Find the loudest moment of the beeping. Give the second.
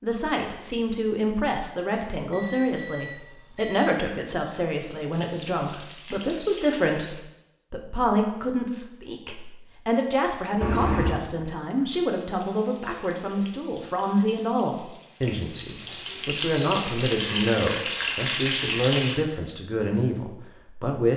11 s.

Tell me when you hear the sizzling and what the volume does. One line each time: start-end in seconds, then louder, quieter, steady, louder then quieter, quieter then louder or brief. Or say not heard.
5.1-7.2 brief
12.2-19.1 louder.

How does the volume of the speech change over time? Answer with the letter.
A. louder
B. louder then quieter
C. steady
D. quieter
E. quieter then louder
C.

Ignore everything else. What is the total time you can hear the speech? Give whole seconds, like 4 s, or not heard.
21 s.